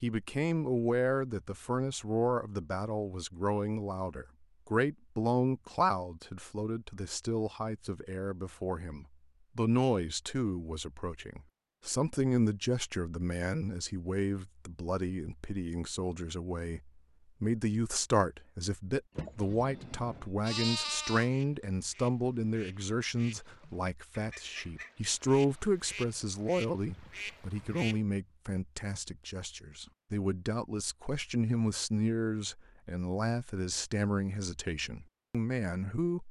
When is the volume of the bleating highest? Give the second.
21 s.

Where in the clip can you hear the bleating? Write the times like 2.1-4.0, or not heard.
19.1-21.3.